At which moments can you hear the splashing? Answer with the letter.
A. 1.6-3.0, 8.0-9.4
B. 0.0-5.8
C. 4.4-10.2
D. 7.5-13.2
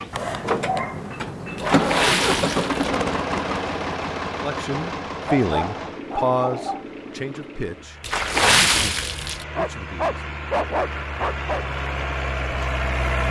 A.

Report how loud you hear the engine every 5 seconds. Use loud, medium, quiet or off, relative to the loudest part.
loud, medium, loud.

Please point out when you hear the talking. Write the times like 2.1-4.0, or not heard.
4.4-10.2.